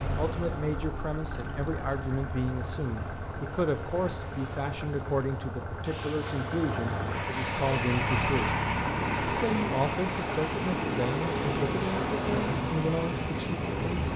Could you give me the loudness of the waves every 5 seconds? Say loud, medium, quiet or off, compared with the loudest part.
quiet, medium, loud.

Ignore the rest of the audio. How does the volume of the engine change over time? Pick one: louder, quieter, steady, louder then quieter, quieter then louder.
louder then quieter.